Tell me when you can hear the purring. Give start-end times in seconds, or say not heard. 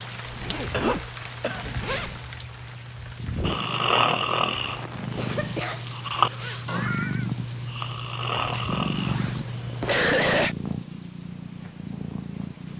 0.0-12.7.